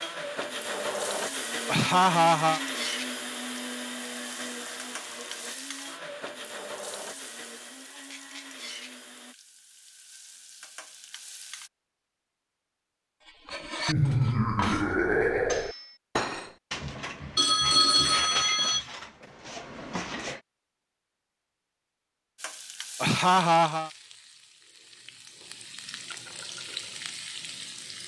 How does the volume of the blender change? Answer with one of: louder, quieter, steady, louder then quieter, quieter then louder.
quieter.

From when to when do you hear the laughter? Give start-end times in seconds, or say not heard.
1.6-2.6, 13.8-15.8, 23.0-23.9.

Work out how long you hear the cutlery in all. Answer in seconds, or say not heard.
7 s.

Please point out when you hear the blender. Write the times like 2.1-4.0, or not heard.
0.0-9.3.